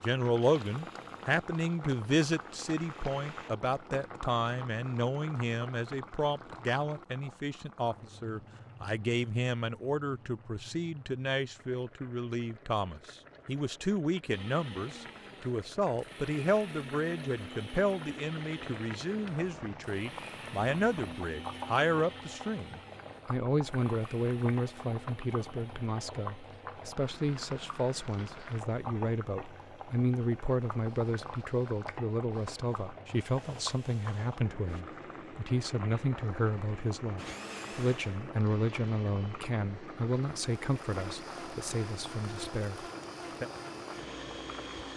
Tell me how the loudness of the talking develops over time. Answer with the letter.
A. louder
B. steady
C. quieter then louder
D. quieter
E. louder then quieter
B.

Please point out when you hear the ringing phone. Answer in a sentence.
You can't hear the ringing phone here.